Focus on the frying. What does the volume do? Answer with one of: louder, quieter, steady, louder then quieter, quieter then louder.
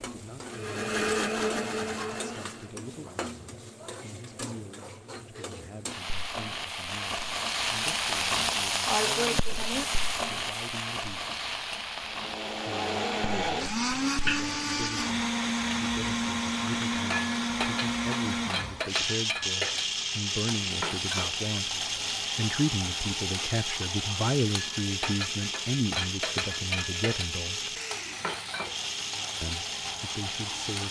louder then quieter.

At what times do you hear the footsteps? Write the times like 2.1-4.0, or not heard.
not heard.